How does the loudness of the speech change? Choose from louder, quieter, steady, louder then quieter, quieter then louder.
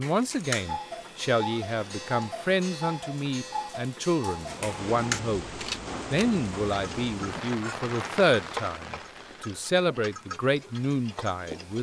steady.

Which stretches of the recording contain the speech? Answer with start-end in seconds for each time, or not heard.
0.0-11.7.